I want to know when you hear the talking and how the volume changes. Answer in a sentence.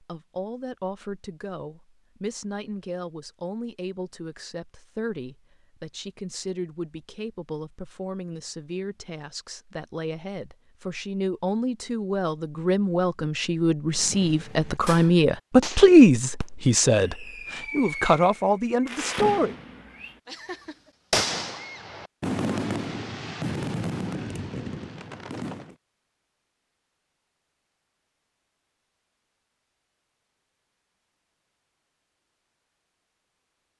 You can hear the talking from 0.0 to 19.6 s, getting louder.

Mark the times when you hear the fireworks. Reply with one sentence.
The fireworks can be heard from 13.9 to 25.8 s.